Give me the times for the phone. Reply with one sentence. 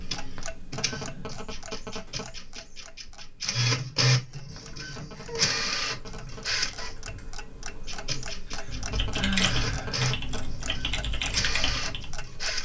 The phone can be heard from 0.3 to 2.3 s, from 4.5 to 6.5 s and from 8.5 to 10.4 s.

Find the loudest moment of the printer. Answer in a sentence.
The loudest moment of the printer is at 4 seconds.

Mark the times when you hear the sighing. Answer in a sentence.
You can hear the sighing from 0.8 to 1.4 s, from 5.1 to 5.5 s and from 8.4 to 10.1 s.